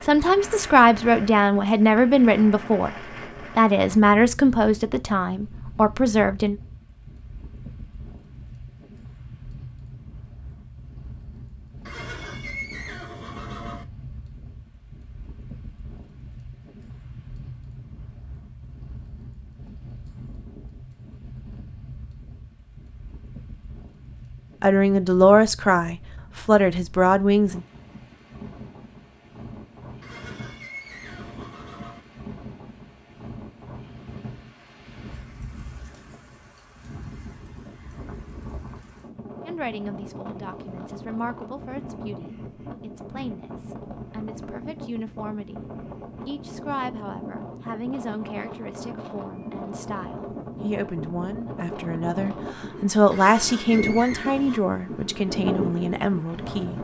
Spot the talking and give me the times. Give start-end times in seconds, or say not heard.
0.0-2.9, 3.5-6.5, 24.6-27.6, 39.5-45.6, 46.2-56.7.